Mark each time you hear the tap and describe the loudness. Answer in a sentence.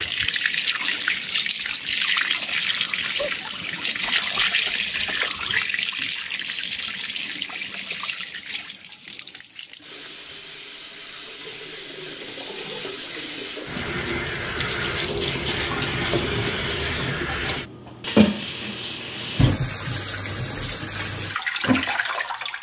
You can hear the tap from 0.0 to 22.5 s, getting quieter then louder.